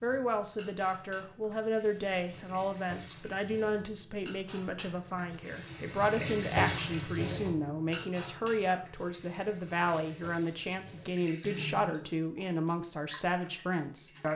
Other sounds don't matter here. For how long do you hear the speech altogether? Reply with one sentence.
The speech can be heard for 14 seconds in total.